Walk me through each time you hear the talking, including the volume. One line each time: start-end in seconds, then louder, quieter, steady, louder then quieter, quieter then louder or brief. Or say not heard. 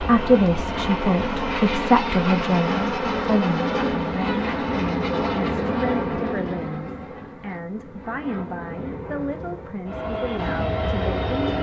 0.0-11.3 quieter.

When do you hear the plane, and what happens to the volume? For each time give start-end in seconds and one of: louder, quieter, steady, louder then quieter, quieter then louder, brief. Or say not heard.
0.0-11.5 quieter then louder.